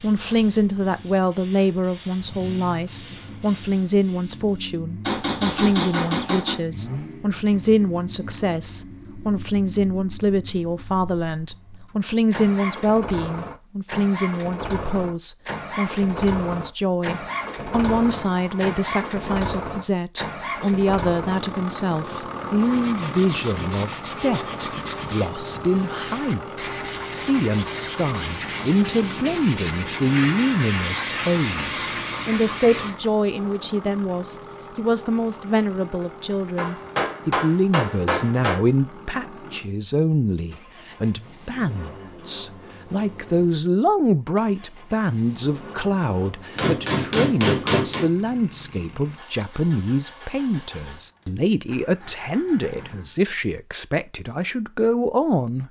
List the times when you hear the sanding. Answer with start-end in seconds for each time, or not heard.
22.6-33.0.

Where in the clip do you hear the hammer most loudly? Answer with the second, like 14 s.
48 s.